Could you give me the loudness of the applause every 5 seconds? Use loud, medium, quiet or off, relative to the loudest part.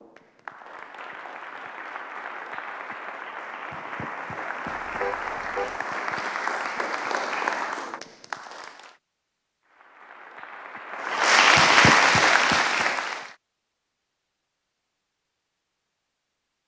quiet, medium, loud, off.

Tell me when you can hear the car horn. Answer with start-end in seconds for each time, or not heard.
4.8-5.8.